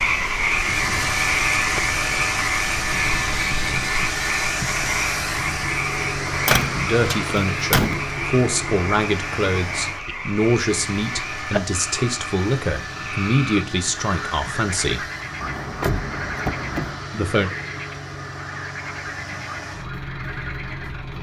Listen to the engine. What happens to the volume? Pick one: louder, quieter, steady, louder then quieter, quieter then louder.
quieter.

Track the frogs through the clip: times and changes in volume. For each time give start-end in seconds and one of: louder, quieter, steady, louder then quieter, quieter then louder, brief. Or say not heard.
0.0-21.1 quieter.